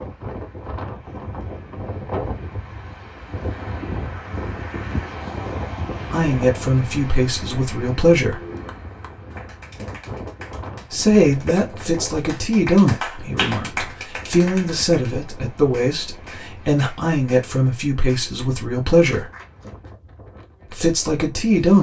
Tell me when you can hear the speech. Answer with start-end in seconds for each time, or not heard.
6.1-8.4, 10.9-19.2, 20.7-21.7.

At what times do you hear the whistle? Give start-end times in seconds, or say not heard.
not heard.